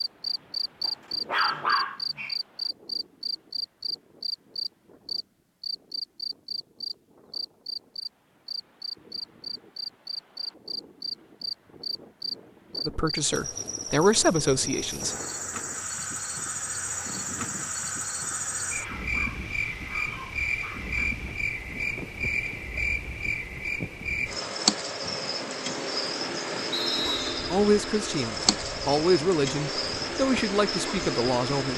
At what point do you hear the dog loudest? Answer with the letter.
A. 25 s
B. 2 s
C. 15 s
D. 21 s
B.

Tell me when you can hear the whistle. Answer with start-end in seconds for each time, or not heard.
26.7-27.5.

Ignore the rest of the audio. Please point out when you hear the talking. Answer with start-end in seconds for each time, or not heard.
12.8-15.2, 27.5-31.7.